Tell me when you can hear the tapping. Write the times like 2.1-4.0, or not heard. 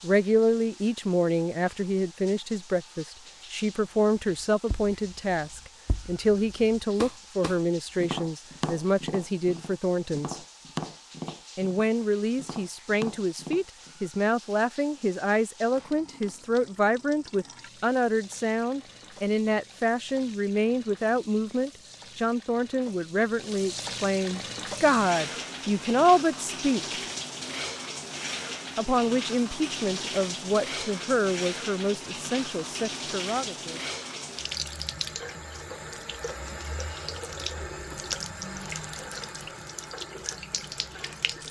4.4-14.0.